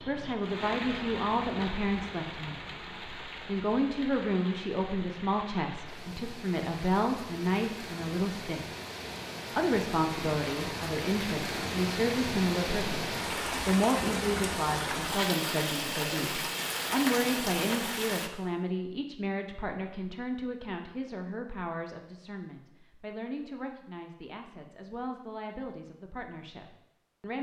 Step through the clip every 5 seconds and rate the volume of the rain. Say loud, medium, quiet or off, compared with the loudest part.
medium, medium, loud, loud, off, off.